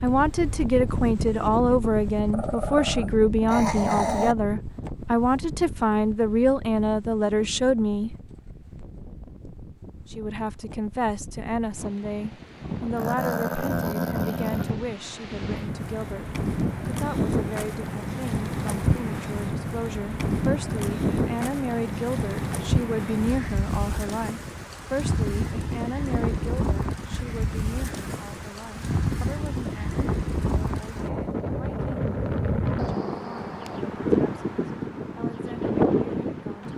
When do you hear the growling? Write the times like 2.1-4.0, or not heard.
2.3-4.3, 12.9-14.7, 32.8-33.8.